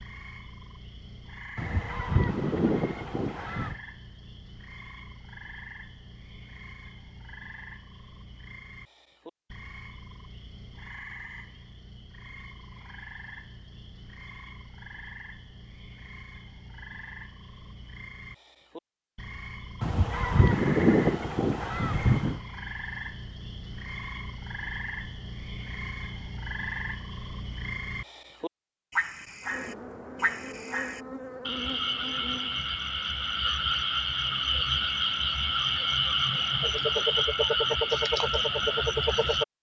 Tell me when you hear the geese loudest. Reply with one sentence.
The volume of the geese peaks at 21 seconds.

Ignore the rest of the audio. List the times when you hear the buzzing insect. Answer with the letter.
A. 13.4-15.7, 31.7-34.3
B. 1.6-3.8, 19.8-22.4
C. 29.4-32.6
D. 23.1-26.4
C.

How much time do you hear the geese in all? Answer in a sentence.
You can hear the geese for 5 seconds altogether.